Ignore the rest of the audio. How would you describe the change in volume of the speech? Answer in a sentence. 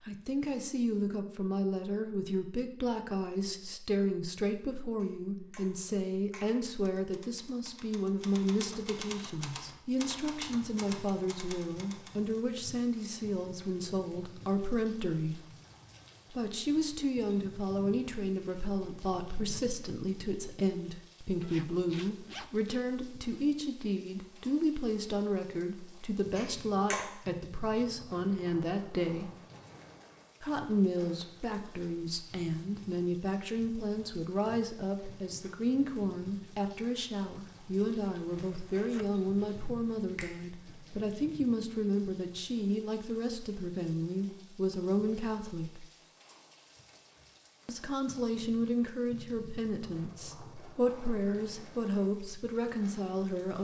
The loudness of the speech stays about the same.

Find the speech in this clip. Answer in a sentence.
The speech can be heard from 0.1 to 15.4 s, from 16.3 to 29.3 s, from 30.4 to 45.9 s and from 47.6 to 53.5 s.